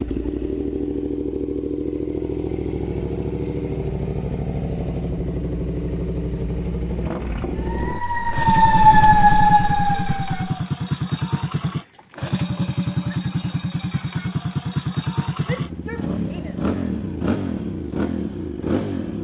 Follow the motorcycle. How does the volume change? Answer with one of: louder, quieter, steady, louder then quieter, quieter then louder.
steady.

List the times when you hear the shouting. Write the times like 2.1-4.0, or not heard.
15.4-16.7.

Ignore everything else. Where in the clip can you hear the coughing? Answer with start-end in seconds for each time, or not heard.
not heard.